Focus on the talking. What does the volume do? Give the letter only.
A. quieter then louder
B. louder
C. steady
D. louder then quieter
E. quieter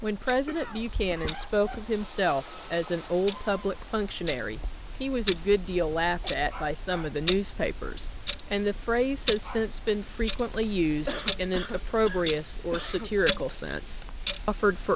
C.